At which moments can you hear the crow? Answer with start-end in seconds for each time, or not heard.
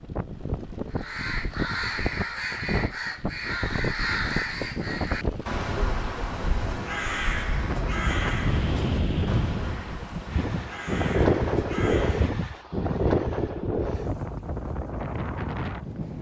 0.9-12.3.